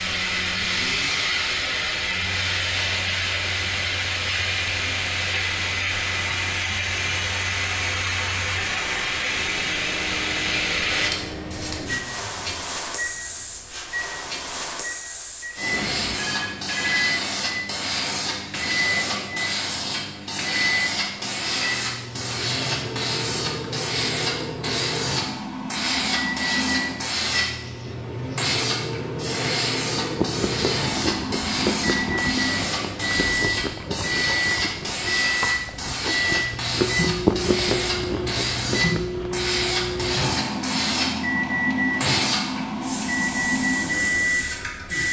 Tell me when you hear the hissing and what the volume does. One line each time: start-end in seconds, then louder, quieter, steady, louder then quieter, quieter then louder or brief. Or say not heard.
0.0-45.0 steady.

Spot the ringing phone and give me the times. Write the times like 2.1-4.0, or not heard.
15.7-17.1.